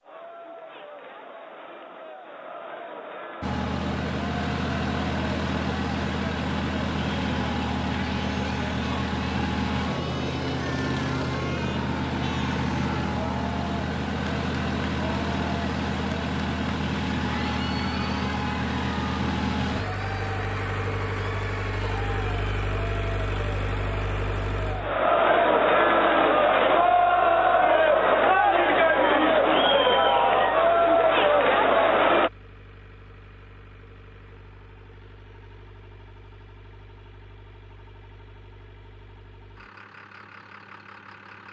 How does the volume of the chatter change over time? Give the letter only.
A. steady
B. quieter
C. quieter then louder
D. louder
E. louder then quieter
D.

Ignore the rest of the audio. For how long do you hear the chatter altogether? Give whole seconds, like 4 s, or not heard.
32 s.